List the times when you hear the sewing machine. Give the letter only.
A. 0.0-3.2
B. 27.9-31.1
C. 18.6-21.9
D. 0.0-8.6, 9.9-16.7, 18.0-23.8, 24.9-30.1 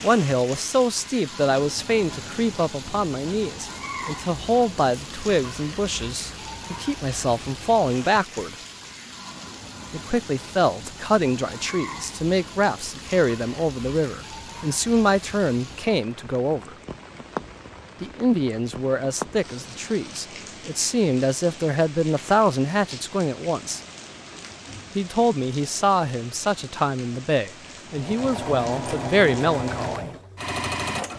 B.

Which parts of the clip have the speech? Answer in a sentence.
You can hear the speech from 0.0 to 8.6 s, from 9.9 to 16.7 s, from 18.0 to 23.8 s and from 24.9 to 30.1 s.